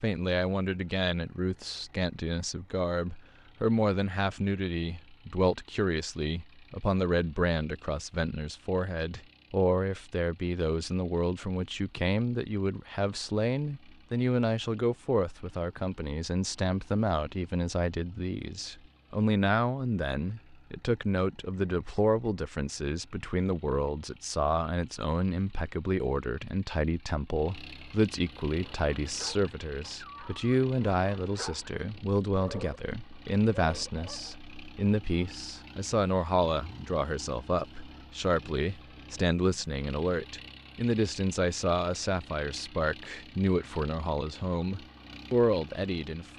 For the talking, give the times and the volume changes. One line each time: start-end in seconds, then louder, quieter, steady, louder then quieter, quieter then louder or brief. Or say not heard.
0.0-46.3 steady.